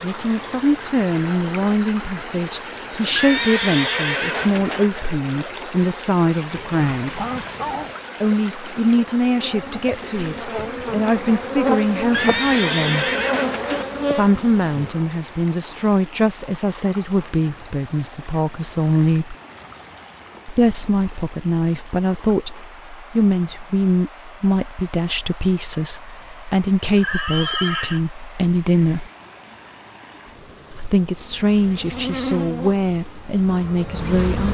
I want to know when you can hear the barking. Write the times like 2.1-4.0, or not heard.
6.5-8.0.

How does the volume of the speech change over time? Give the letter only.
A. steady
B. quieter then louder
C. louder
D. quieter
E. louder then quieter
A.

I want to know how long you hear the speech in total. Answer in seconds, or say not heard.
30 s.